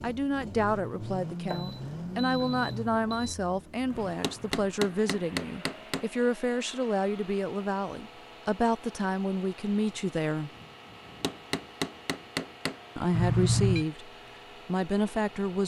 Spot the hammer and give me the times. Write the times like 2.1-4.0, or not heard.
4.1-6.0, 11.1-12.8.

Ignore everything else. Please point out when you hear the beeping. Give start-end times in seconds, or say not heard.
1.4-3.4, 13.1-13.8.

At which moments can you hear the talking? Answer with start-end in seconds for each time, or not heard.
0.0-10.5, 12.9-15.6.